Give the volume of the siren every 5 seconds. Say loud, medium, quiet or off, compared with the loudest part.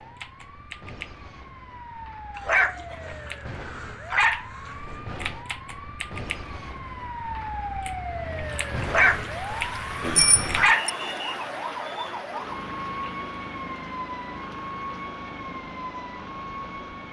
medium, loud, loud, loud.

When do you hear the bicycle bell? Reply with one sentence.
The bicycle bell can be heard from 10.2 to 10.9 s.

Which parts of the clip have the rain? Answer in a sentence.
The rain can be heard from 8.4 to 17.0 s.